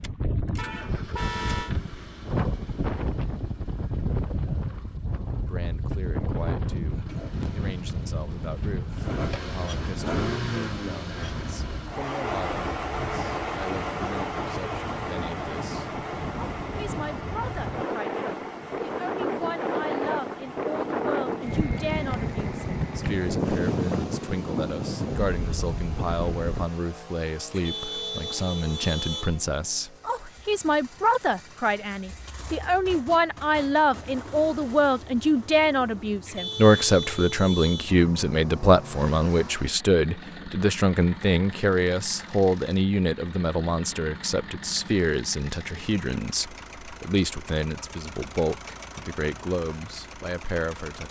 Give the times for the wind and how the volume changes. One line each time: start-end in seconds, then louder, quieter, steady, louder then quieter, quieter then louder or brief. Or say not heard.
0.0-26.7 quieter then louder.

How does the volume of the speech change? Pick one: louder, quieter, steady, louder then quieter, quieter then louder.
louder then quieter.